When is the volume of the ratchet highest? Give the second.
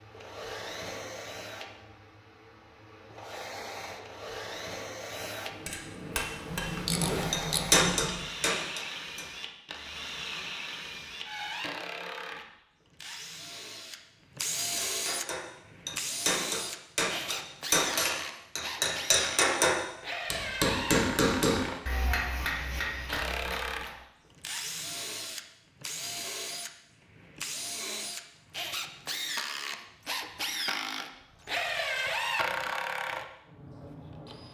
7 s.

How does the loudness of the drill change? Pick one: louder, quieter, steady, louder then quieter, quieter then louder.
louder.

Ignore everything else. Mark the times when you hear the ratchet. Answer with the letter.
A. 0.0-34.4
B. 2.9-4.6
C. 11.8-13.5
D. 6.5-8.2
D.